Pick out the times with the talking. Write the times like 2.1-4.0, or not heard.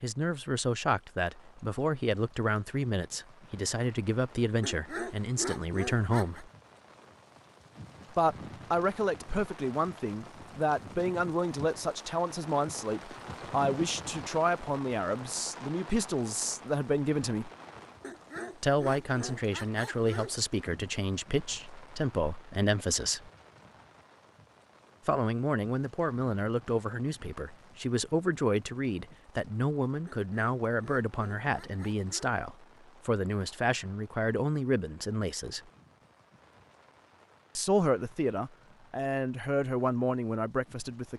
0.0-6.5, 8.2-17.5, 18.6-23.3, 25.1-35.6, 37.5-41.1.